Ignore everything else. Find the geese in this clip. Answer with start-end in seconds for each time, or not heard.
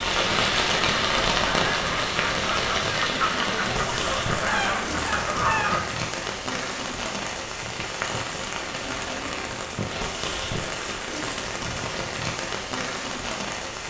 0.3-5.8.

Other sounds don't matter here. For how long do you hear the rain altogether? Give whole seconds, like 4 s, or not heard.
14 s.